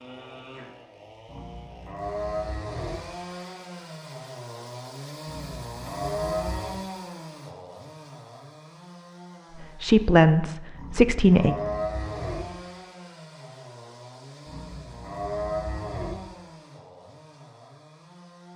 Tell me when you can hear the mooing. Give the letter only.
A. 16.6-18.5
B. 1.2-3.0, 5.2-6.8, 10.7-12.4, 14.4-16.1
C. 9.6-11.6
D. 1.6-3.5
B.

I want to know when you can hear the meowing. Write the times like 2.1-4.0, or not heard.
not heard.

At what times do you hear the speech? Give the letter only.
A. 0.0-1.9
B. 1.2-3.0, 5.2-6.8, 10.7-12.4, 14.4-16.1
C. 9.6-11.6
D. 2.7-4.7
C.